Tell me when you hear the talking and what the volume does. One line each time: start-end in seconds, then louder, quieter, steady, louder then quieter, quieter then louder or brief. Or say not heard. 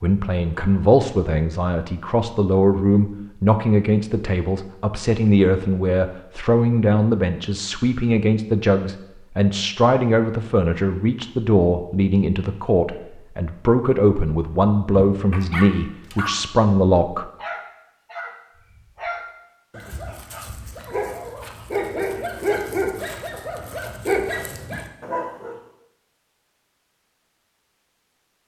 0.0-17.3 steady.